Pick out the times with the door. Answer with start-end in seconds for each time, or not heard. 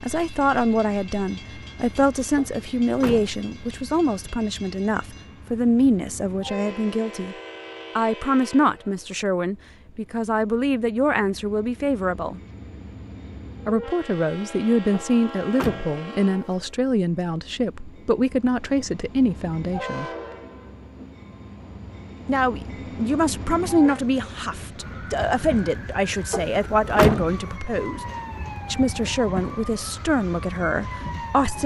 2.4-3.4, 14.9-15.9, 26.3-27.4.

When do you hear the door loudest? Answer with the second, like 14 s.
27 s.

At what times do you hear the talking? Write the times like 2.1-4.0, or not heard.
0.0-7.3, 8.0-12.4, 13.7-20.1, 22.2-28.1, 28.7-31.6.